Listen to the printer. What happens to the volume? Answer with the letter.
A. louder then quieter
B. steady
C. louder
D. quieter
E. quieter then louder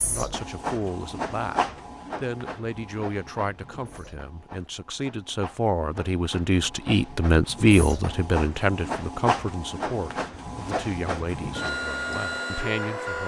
E.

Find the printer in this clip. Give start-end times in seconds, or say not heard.
0.0-13.2.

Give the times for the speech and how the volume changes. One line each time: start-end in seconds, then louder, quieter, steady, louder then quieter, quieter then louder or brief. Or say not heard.
0.0-1.6 brief
2.2-13.2 louder then quieter.